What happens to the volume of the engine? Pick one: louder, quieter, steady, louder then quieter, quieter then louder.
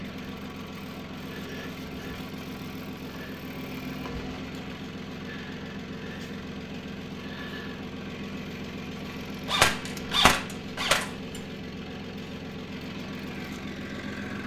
steady.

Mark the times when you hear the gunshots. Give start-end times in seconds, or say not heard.
9.4-11.4.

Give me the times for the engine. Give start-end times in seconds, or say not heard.
0.0-14.4.